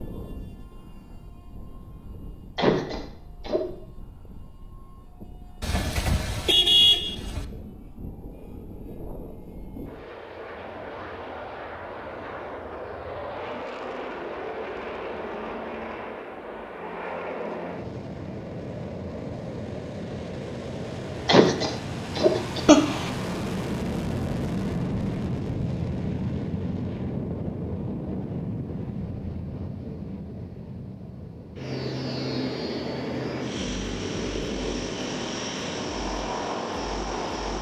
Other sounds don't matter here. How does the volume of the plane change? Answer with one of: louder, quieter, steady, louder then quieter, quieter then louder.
louder.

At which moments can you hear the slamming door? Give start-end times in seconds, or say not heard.
not heard.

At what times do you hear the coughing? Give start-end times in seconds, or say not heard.
2.5-3.6, 21.2-23.1.